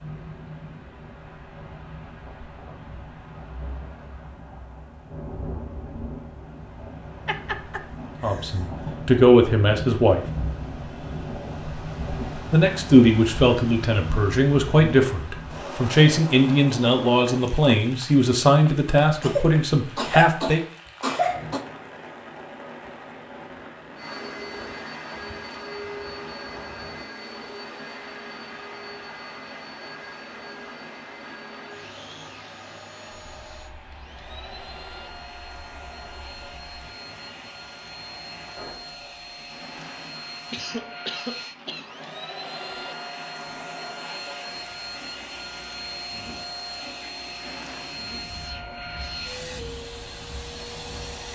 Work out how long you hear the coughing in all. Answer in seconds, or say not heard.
5 s.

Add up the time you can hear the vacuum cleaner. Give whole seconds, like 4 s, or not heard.
27 s.